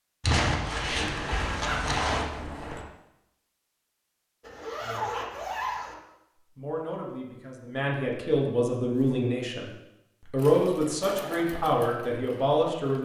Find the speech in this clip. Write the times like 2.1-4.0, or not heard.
6.5-9.7, 10.3-13.0.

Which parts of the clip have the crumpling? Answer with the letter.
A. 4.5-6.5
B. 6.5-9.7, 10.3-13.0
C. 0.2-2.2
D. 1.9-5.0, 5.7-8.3
C.